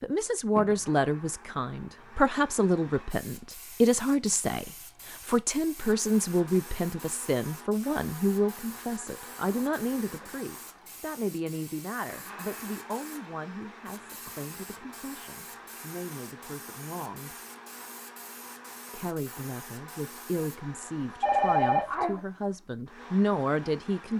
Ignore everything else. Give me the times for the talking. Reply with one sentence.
The talking can be heard from 0.0 to 17.4 s and from 18.9 to 24.1 s.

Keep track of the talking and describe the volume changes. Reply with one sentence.
The volume of the talking goes down, then up.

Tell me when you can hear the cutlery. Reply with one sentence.
The cutlery can't be heard in this clip.